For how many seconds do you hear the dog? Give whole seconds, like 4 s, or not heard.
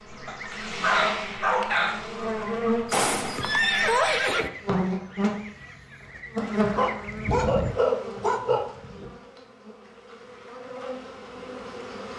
4 s.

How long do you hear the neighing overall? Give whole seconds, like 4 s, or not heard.
2 s.